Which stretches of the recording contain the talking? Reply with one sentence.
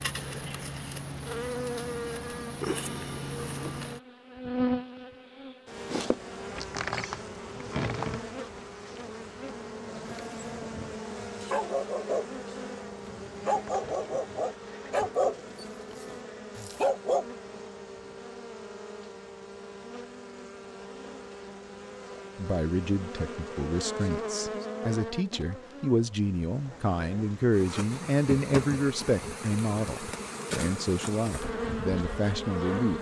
You can hear the talking from 22.4 to 32.9 s.